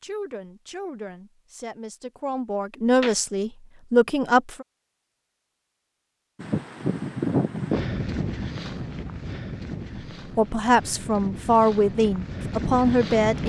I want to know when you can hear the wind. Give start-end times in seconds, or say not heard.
6.3-13.4.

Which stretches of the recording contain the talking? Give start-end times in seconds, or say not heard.
0.0-4.7, 10.3-13.4.